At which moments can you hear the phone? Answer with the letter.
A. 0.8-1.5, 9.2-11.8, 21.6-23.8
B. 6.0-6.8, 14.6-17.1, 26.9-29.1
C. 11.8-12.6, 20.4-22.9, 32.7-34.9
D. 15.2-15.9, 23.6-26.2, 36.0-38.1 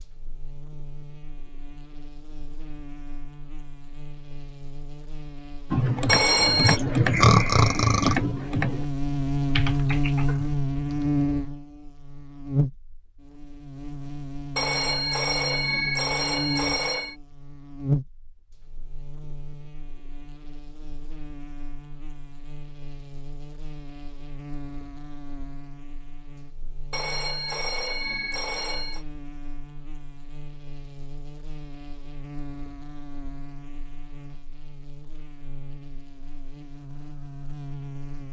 B.